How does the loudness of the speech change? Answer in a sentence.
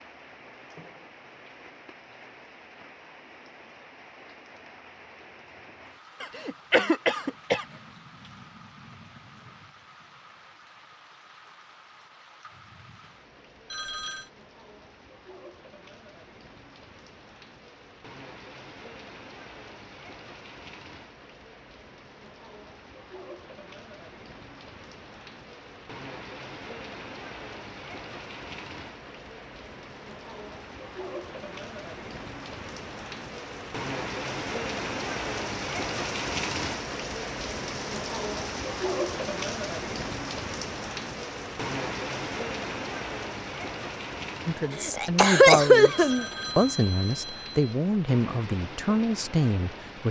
The loudness of the speech stays about the same.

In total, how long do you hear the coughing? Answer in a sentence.
The coughing can be heard for 3 seconds in total.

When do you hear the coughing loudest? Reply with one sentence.
The loudest moment of the coughing is at 46 seconds.